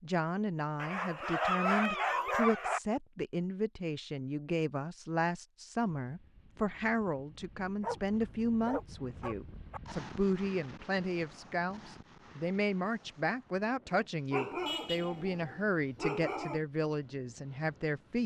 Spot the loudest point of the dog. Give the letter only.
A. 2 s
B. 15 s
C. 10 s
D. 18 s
A.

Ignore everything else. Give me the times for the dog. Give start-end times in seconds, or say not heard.
0.8-2.8, 7.8-9.8, 14.3-16.6.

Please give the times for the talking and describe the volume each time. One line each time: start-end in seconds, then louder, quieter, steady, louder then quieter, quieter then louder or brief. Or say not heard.
0.0-18.2 steady.